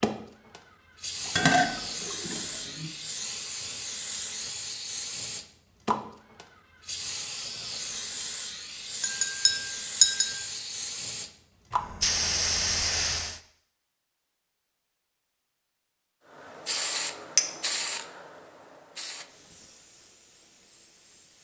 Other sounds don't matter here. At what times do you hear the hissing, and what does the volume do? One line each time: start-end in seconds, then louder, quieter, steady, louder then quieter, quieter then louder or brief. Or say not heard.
0.0-13.4 louder
16.3-21.3 quieter.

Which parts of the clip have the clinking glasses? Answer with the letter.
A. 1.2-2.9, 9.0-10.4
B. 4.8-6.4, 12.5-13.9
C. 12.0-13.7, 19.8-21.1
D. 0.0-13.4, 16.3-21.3
A.